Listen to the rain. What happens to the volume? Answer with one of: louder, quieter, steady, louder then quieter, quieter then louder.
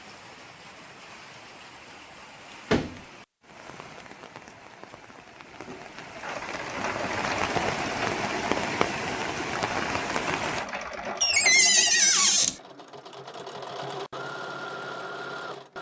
louder.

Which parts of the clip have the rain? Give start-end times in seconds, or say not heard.
0.0-10.7.